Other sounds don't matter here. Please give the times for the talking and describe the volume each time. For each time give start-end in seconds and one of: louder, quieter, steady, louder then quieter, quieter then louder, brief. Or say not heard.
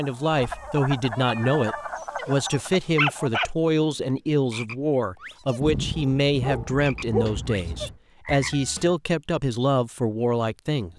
0.0-10.9 steady.